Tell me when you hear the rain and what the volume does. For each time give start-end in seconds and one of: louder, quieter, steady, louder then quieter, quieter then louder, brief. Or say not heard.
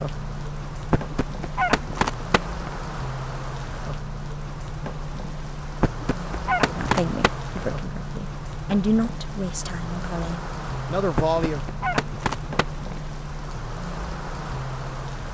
0.0-15.2 steady.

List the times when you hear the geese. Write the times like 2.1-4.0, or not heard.
0.9-2.8, 5.8-7.7, 11.2-13.0.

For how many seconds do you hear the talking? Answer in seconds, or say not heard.
5 s.